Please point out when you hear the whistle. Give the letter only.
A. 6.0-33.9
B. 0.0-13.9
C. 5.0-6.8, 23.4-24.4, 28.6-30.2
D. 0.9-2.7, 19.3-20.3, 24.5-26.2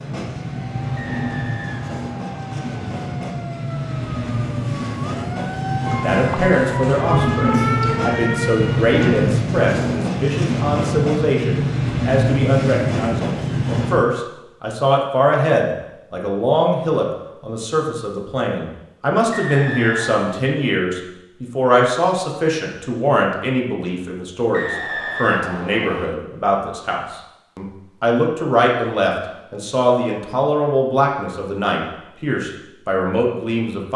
D.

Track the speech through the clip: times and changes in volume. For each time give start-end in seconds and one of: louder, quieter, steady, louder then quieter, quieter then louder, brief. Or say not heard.
6.0-33.9 steady.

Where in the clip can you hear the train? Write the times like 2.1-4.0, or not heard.
0.0-13.9.